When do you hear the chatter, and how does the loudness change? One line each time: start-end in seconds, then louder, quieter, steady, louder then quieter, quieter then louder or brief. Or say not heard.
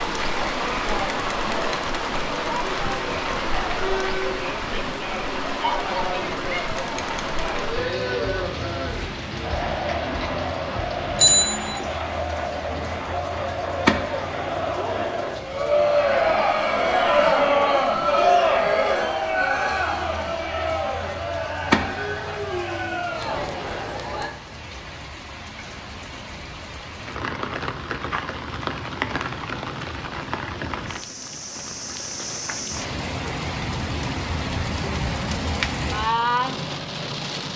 0.0-24.3 louder then quieter.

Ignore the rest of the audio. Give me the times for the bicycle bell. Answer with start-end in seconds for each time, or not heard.
11.2-11.8.